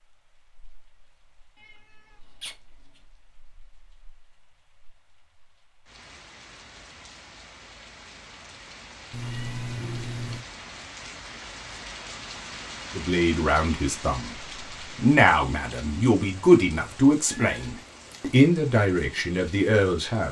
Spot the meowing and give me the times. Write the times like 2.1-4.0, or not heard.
1.6-3.0, 9.1-10.4, 17.2-18.4.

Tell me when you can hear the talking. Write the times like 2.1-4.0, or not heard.
12.9-14.3, 14.9-20.2.